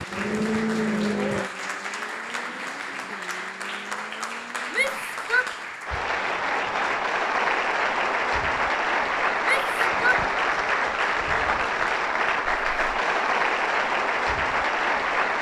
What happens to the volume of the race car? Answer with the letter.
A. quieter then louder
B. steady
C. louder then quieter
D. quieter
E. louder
D.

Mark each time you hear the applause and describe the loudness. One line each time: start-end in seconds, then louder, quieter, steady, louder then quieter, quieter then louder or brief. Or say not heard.
0.0-15.3 louder.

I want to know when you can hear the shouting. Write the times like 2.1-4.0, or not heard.
4.7-5.5, 9.4-10.2.